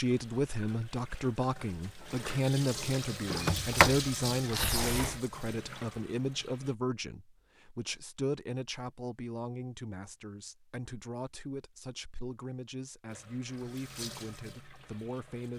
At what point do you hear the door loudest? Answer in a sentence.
The loudest moment of the door is at 4 seconds.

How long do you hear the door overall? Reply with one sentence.
The door can be heard for 2 seconds in total.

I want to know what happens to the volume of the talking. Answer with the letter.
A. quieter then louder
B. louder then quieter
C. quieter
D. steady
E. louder
C.